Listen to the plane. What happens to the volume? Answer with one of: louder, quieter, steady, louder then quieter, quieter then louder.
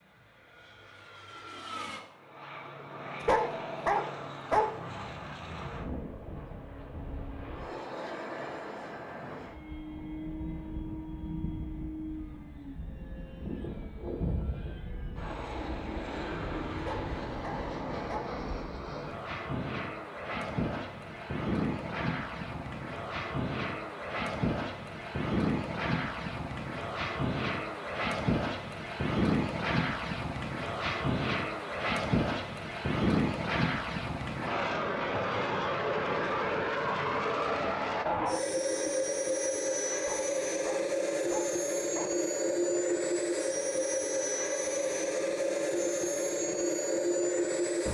louder.